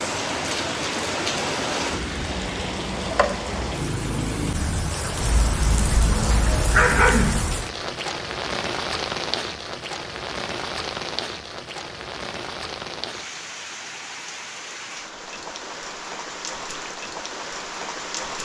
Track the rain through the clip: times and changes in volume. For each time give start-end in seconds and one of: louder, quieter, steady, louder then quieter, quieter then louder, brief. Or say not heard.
0.0-18.4 quieter.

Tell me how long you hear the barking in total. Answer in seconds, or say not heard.
2 s.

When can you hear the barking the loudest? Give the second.
7 s.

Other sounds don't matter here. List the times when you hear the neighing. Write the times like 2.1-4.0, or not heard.
not heard.